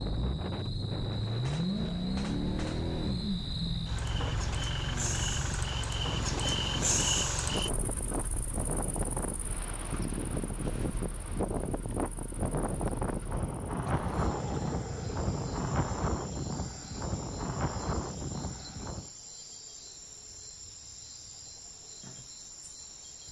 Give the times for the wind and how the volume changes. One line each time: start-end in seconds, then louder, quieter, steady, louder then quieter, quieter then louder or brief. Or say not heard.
0.0-19.1 louder.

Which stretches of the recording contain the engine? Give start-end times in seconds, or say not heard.
0.0-15.7.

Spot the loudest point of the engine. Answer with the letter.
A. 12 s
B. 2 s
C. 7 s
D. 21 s
B.